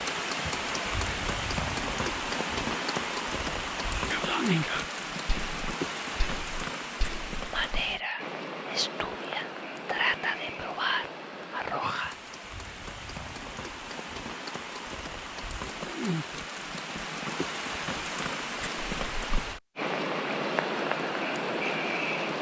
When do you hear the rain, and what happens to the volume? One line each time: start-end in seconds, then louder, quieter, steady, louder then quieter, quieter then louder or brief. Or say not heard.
0.0-22.3 quieter then louder.